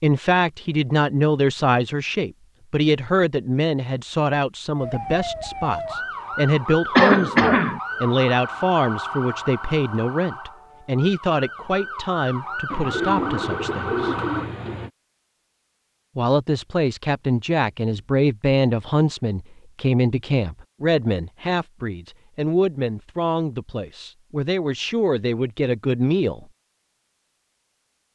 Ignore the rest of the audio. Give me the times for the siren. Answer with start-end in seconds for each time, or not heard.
4.8-14.5.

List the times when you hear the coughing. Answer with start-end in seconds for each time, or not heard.
7.0-7.8.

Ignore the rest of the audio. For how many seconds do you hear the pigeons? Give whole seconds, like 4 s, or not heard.
2 s.